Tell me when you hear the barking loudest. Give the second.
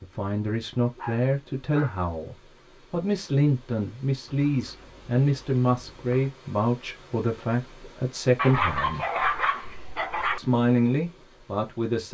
9 s.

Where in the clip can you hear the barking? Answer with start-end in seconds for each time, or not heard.
0.9-2.1, 4.2-6.3, 8.3-10.4.